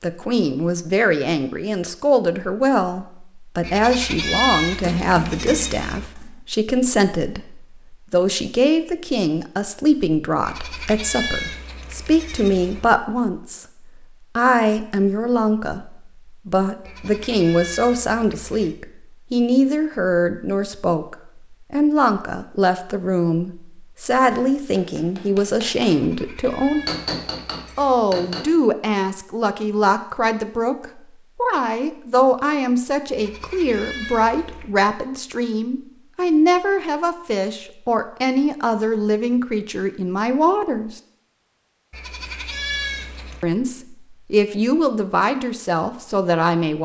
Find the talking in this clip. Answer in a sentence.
You can hear the talking from 0.0 to 26.9 s, from 27.8 to 41.0 s and from 43.4 to 46.7 s.